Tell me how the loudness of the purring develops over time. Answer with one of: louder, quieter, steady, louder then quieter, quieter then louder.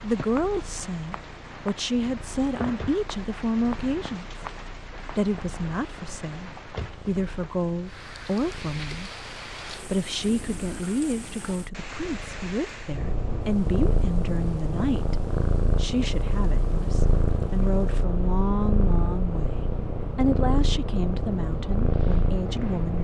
louder.